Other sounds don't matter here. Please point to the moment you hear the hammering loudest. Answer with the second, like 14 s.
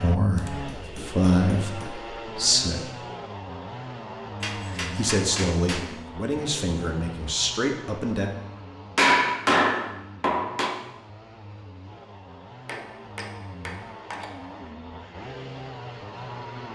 9 s.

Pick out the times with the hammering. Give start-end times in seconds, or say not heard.
0.3-1.9, 4.4-5.9, 8.9-10.8, 12.7-14.3.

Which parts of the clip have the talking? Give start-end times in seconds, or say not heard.
0.0-2.9, 4.8-8.3.